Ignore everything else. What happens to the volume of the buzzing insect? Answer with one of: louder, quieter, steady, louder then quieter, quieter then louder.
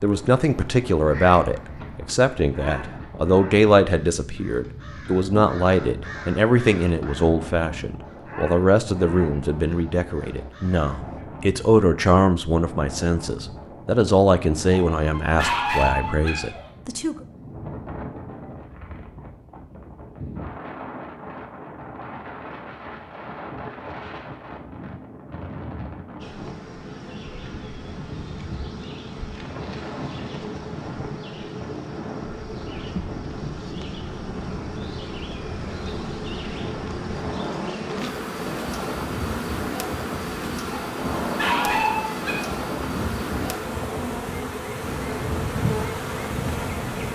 louder.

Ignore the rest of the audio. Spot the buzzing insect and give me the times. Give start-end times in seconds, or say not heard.
26.2-47.1.